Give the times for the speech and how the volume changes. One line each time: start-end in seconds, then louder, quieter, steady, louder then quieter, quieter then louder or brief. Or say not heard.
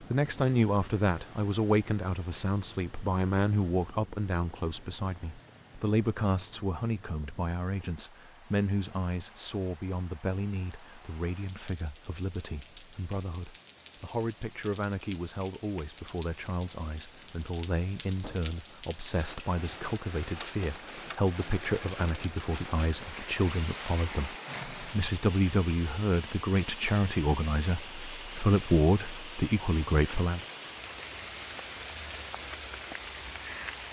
0.1-30.4 quieter then louder.